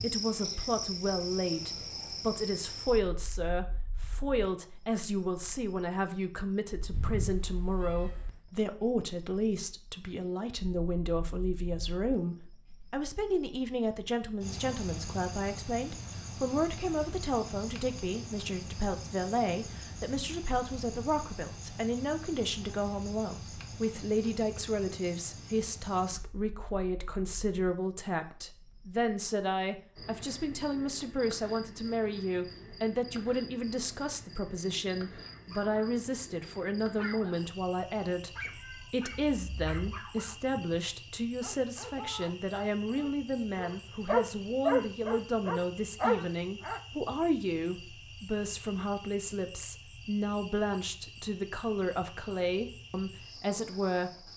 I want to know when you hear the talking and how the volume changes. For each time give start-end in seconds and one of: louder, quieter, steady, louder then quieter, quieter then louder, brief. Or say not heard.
0.0-54.1 steady.